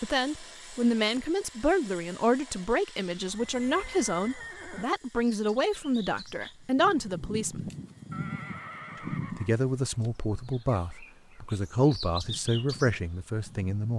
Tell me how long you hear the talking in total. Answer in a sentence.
You can hear the talking for 12 seconds altogether.